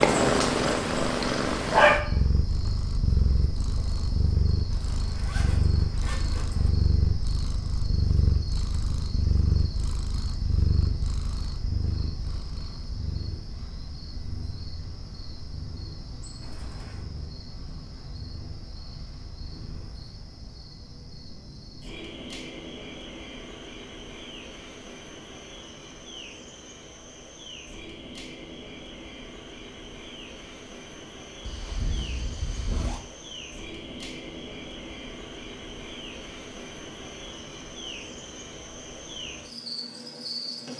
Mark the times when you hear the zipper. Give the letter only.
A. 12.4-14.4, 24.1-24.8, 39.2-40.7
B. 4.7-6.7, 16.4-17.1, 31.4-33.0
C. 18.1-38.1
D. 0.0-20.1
B.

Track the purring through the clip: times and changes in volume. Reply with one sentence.
The purring can be heard from 0.0 to 20.1 s, getting quieter.